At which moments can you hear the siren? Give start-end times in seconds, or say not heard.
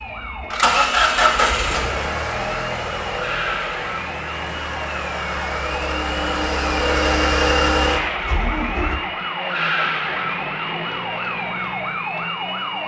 0.0-12.8.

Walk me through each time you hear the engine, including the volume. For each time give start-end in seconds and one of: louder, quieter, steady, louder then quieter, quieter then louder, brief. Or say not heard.
0.0-8.9 quieter then louder.